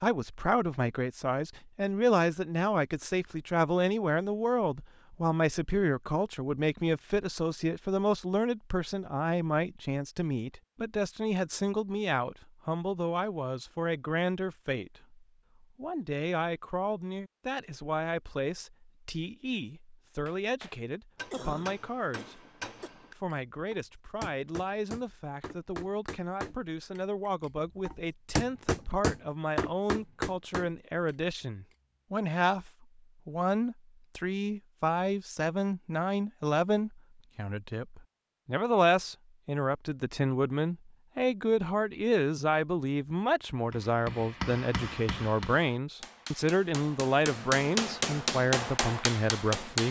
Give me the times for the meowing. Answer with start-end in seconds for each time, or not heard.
not heard.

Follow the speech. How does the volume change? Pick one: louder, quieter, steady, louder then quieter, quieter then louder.
quieter then louder.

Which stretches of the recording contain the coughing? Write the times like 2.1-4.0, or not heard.
21.3-22.9.